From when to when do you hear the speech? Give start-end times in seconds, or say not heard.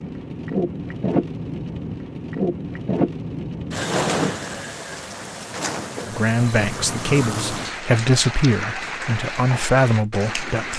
6.0-10.7.